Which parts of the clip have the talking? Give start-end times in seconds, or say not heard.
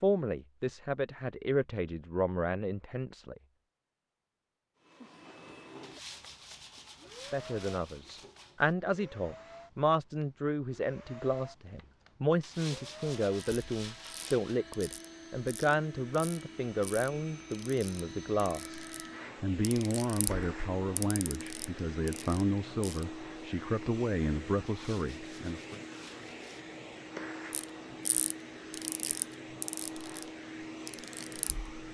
0.0-3.4, 7.1-25.8.